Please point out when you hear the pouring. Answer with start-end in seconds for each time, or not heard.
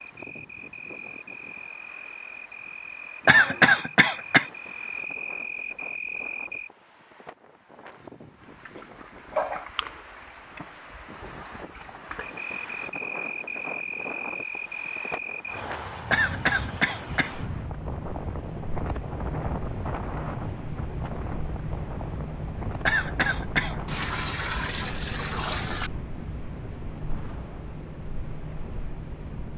23.9-25.9.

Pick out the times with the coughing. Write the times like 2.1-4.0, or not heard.
3.2-4.5, 16.1-17.4, 22.9-23.8.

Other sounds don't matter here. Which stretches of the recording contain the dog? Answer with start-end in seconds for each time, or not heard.
not heard.